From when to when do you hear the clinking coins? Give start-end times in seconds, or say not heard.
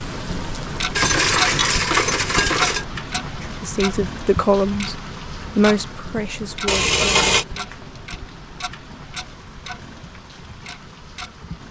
0.9-2.9, 6.7-7.5.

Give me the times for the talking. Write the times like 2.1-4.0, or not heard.
3.4-7.8.